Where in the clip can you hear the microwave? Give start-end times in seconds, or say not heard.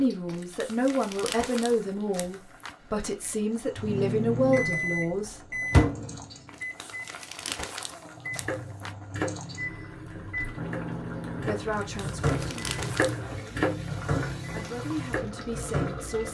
3.8-16.2.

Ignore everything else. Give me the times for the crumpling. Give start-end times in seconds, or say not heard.
0.2-2.8, 6.5-8.9, 11.7-13.2.